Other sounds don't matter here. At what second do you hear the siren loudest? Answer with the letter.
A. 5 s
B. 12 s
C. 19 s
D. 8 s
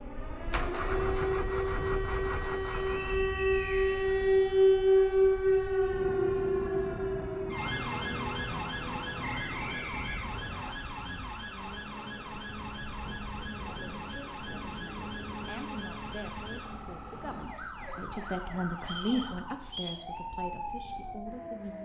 A.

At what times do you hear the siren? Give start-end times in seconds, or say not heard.
0.0-21.8.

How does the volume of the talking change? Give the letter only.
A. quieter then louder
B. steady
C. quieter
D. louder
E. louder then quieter
E.